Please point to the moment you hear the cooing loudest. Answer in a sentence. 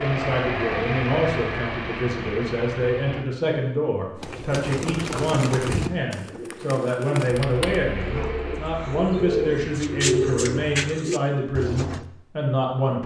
The loudest moment of the cooing is at 10 seconds.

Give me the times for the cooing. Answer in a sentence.
The cooing can be heard from 4.2 to 12.1 s.